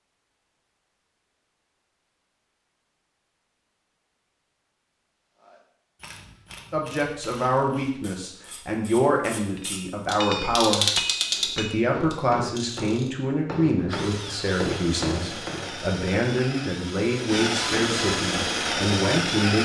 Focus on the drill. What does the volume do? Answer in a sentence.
The loudness of the drill goes up.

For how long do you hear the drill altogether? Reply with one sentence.
The drill can be heard for 6 seconds in total.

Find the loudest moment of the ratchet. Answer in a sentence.
The loudest moment of the ratchet is at 11 seconds.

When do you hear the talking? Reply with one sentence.
You can hear the talking from 6.7 to 19.6 s.